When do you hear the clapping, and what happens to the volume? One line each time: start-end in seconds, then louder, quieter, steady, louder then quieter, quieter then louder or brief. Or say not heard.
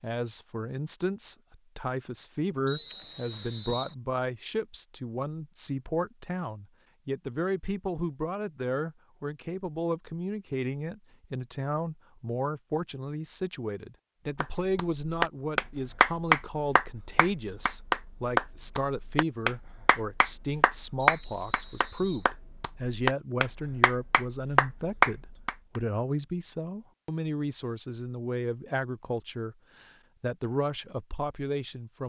14.4-25.8 quieter then louder.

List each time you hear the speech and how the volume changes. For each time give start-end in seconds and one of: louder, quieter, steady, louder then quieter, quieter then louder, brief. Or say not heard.
0.0-32.0 steady.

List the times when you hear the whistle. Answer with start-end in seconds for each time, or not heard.
2.6-4.0, 20.9-22.3.